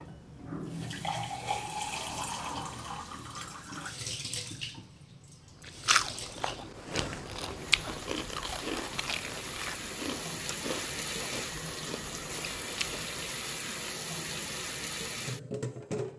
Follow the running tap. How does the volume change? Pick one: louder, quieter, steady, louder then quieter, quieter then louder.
quieter then louder.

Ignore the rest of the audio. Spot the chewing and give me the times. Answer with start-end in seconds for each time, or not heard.
5.6-13.2.